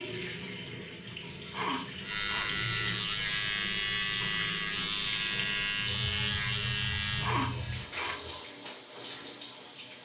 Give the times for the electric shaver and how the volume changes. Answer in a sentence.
You can hear the electric shaver from 2.0 to 7.3 s, at a steady volume.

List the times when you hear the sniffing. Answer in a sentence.
You can hear the sniffing from 1.1 to 2.6 s and from 6.8 to 8.3 s.